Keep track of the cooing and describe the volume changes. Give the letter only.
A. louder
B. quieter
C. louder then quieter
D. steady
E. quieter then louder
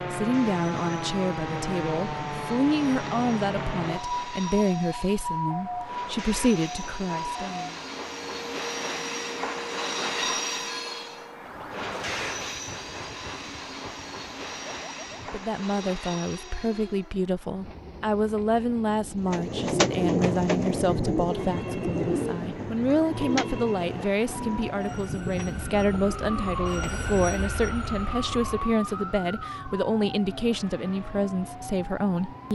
B.